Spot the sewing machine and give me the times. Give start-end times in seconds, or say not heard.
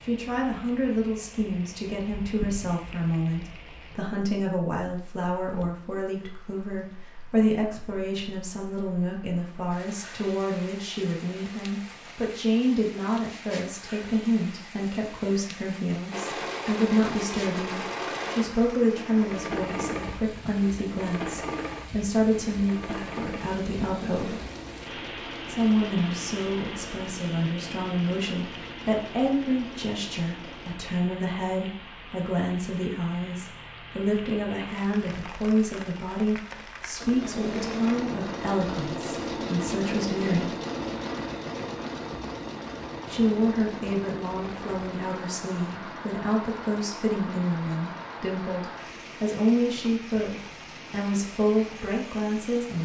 16.1-30.8, 37.0-52.6.